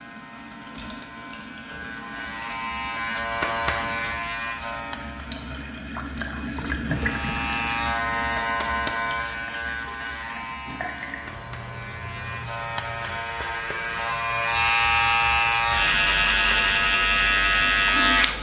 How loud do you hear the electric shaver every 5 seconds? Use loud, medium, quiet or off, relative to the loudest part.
medium, medium, medium, loud.